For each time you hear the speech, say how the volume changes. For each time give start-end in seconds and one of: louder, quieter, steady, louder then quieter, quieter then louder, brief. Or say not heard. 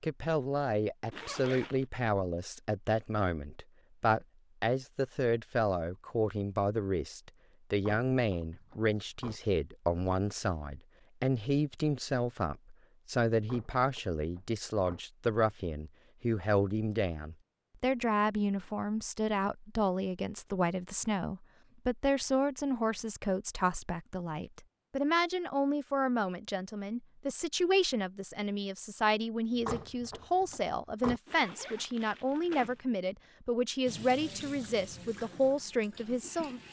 0.0-36.6 steady.